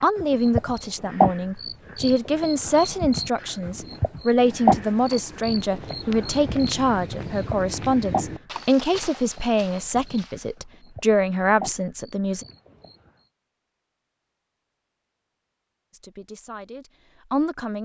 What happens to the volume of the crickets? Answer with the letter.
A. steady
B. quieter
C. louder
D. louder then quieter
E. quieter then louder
B.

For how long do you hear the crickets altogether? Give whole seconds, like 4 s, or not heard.
13 s.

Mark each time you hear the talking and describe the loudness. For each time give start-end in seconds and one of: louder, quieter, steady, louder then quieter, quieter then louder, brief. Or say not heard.
0.0-12.4 steady
15.9-17.8 brief.